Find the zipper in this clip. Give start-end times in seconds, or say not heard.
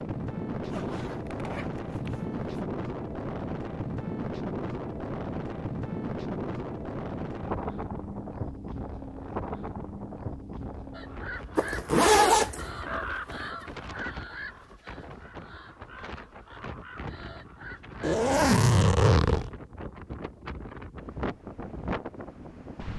0.6-2.6, 11.6-12.7, 18.0-19.5.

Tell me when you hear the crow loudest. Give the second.
13 s.